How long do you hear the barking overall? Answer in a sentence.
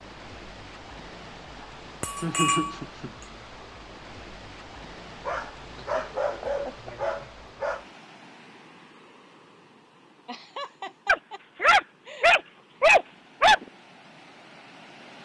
You can hear the barking for 6 seconds altogether.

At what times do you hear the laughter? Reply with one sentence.
You can hear the laughter from 2.2 to 3.1 s, from 5.6 to 7.3 s and from 10.2 to 12.4 s.